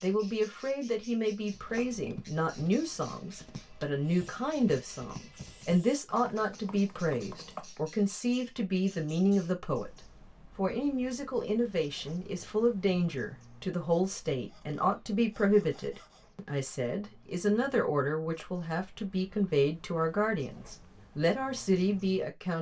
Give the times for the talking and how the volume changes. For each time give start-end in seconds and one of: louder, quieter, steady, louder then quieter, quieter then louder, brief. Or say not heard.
0.0-9.9 steady
10.6-22.5 steady.